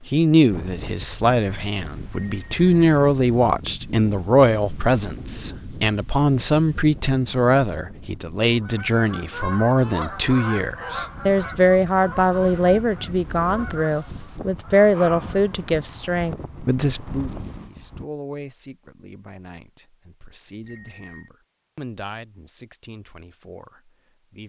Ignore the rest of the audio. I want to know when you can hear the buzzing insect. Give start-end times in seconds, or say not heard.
not heard.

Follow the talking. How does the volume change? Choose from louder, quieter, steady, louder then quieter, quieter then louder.
quieter.